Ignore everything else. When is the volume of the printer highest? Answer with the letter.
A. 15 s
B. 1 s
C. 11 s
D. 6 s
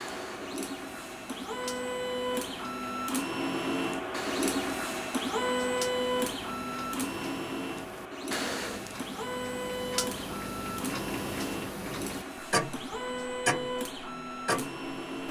D.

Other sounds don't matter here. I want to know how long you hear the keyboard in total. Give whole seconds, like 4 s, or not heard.
not heard.